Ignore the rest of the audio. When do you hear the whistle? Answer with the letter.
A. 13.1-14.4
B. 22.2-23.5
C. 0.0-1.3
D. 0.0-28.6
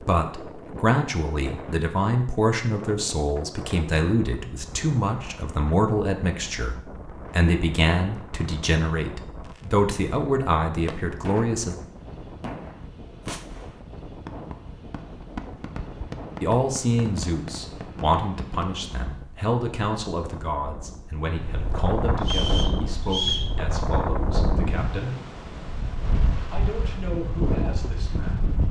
B.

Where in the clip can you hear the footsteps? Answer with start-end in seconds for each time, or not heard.
not heard.